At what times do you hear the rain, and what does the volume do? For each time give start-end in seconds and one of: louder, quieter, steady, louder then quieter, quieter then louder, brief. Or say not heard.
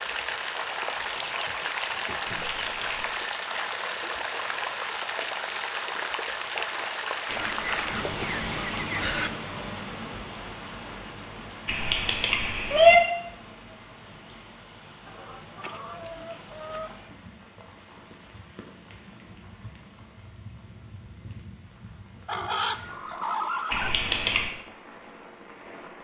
0.0-26.0 quieter.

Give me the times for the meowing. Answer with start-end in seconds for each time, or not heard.
2.2-3.1, 11.7-12.9, 23.7-24.5.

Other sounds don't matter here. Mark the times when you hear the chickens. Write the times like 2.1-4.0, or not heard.
0.9-2.6, 7.2-9.3, 15.1-16.9, 22.2-24.0.